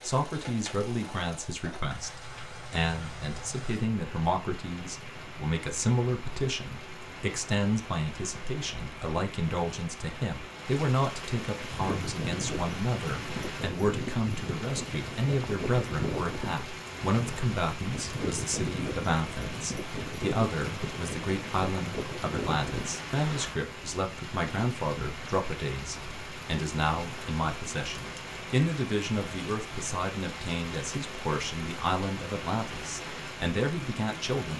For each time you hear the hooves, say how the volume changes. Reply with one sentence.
You can hear the hooves from 11.6 to 23.6 s, at a steady volume.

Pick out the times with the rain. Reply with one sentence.
You can hear the rain from 0.0 to 34.5 s.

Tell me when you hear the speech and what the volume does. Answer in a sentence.
The speech can be heard from 0.0 to 34.5 s, at a steady volume.